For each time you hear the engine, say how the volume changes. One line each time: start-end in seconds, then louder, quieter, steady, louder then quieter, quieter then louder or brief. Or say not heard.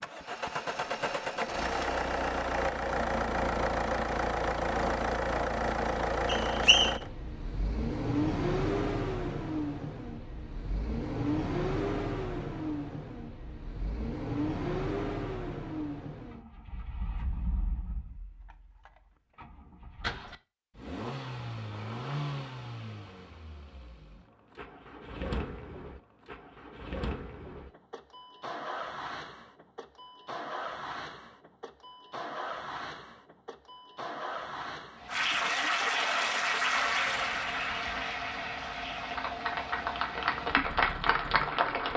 0.0-41.9 quieter.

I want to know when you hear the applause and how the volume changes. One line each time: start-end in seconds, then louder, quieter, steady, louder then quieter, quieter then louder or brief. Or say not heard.
35.0-41.9 quieter then louder.